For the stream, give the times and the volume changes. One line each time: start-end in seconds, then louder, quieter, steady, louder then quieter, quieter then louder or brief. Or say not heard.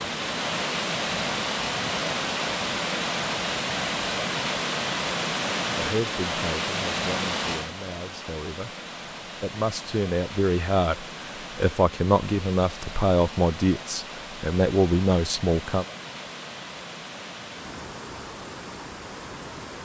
0.0-19.8 quieter.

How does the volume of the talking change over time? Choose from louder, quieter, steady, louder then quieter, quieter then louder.
louder.